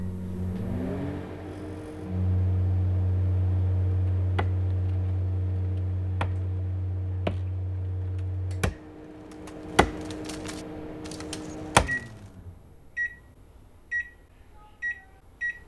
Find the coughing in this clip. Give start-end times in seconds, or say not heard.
not heard.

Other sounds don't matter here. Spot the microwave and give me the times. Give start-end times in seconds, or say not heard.
0.0-15.6.